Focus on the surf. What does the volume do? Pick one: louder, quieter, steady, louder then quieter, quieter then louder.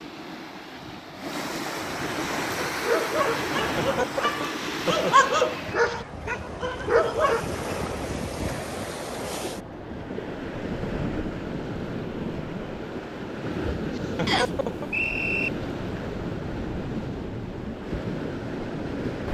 steady.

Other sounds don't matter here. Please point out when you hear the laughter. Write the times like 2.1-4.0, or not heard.
3.8-5.3, 13.9-14.9.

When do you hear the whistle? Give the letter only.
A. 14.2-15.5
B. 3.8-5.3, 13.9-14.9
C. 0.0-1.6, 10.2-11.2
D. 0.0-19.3
A.